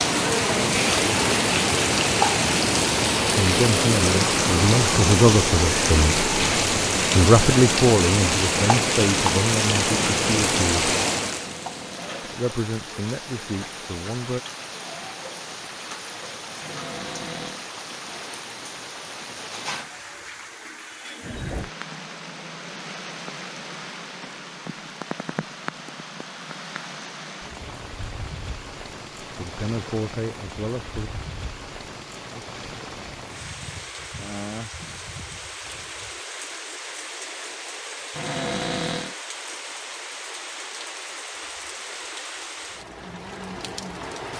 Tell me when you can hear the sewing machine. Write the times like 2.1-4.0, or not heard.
not heard.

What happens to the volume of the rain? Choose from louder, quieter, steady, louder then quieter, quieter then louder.
quieter.